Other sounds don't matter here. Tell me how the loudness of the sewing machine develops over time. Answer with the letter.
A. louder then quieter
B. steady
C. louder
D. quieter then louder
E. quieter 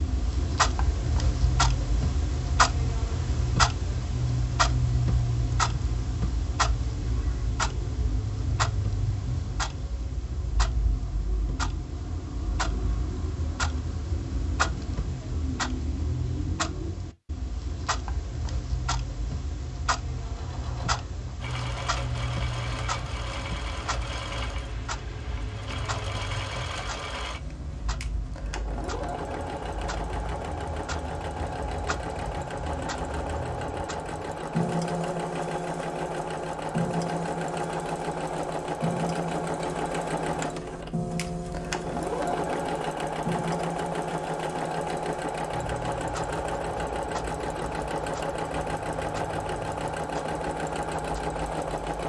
C.